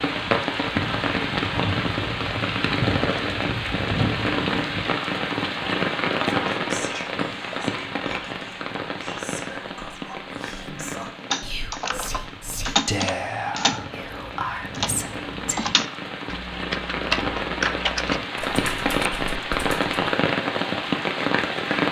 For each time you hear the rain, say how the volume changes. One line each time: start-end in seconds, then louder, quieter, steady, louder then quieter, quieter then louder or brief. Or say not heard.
0.0-21.8 quieter then louder.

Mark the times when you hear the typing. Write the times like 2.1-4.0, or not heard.
11.3-19.9.